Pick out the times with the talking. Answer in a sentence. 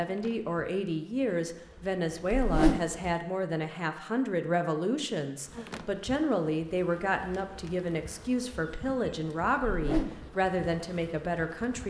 You can hear the talking from 0.0 to 11.8 s.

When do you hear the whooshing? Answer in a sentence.
The whooshing can be heard from 2.4 to 2.9 s and from 9.7 to 10.2 s.